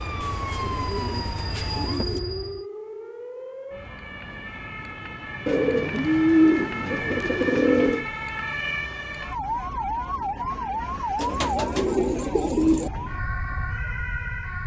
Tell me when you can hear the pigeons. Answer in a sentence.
You can hear the pigeons from 0.2 to 2.2 s, from 5.5 to 8.1 s and from 11.2 to 12.9 s.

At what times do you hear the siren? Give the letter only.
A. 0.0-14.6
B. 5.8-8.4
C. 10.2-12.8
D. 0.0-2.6
A.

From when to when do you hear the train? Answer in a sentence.
You can hear the train from 0.0 to 2.6 s.